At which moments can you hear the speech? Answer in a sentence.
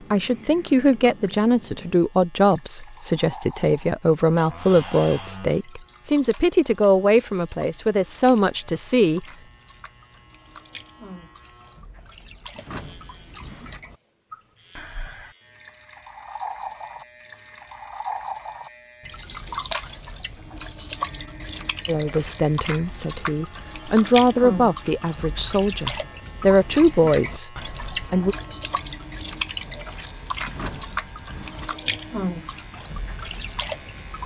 You can hear the speech from 0.1 to 9.2 s and from 21.9 to 28.4 s.